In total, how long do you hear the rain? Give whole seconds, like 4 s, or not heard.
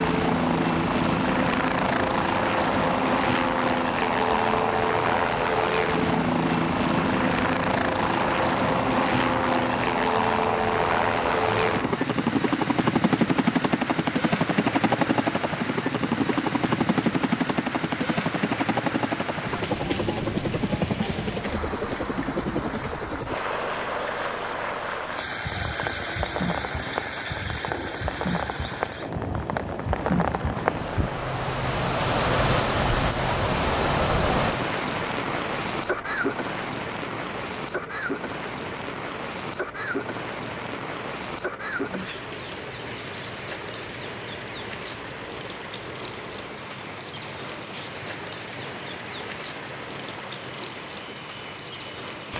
52 s.